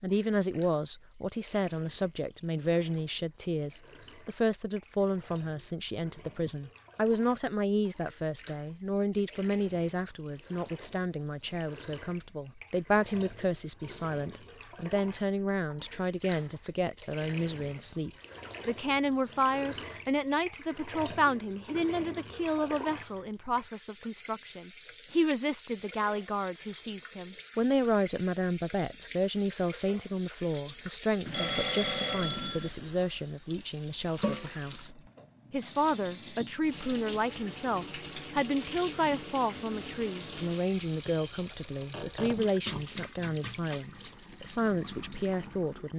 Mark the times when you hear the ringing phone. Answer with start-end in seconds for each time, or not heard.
31.2-32.7.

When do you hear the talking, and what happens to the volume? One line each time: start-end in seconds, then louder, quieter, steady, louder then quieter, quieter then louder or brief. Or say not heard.
0.0-45.9 steady.